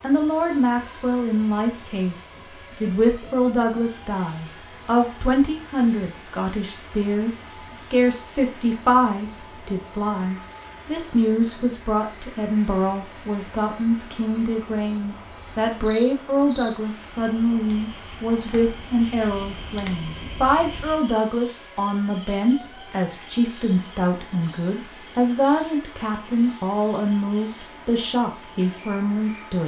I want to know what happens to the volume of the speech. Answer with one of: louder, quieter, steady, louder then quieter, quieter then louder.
steady.